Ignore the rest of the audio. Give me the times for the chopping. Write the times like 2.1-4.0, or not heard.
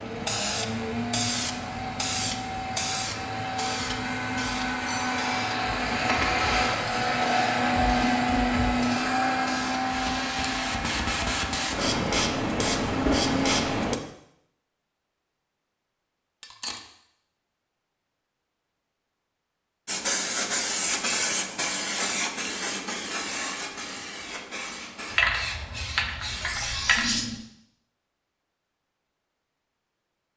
not heard.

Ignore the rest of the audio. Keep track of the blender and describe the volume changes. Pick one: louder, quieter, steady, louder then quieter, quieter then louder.
louder then quieter.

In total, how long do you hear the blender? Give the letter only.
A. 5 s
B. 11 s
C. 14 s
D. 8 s
C.